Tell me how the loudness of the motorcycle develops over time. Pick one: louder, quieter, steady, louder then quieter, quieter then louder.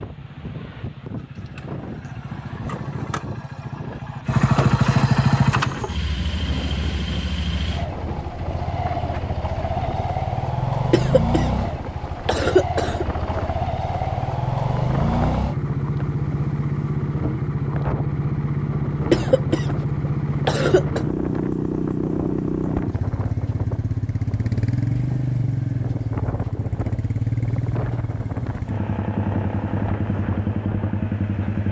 steady.